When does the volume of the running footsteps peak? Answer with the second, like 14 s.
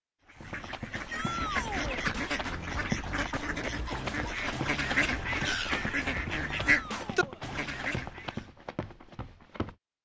3 s.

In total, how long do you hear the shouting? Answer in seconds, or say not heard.
2 s.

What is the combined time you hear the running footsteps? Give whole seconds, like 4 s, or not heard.
9 s.